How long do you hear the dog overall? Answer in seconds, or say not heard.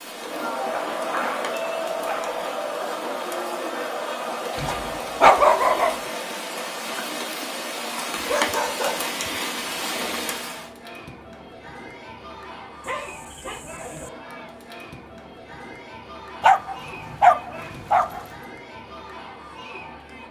7 s.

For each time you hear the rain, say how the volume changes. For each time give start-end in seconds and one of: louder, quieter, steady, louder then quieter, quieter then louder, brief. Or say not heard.
0.0-10.7 louder.